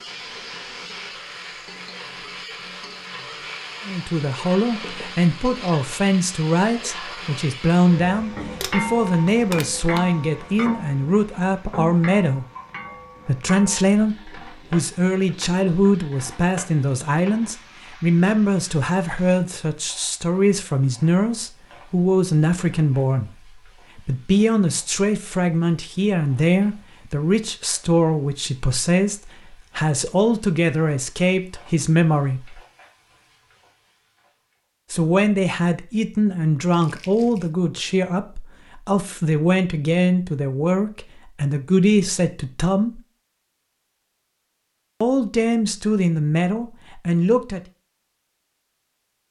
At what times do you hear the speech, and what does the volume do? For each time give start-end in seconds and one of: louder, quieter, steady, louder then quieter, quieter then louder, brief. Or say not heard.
3.9-12.4 steady
13.2-23.3 steady
23.9-32.6 steady
34.9-43.0 steady
45.0-47.6 brief.